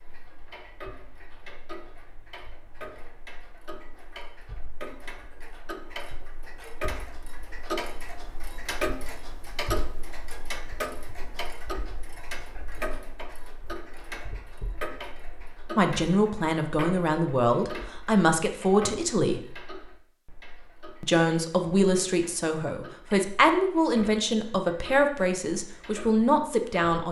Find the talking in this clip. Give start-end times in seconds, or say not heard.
15.7-19.4, 21.0-27.0.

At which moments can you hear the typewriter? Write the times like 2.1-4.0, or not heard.
not heard.